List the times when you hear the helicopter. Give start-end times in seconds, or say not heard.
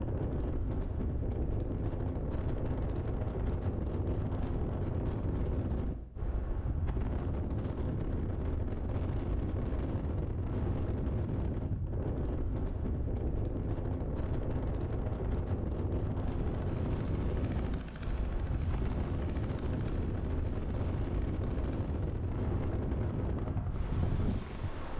16.2-24.7.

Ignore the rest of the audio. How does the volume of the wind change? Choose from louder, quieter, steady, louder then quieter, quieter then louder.
steady.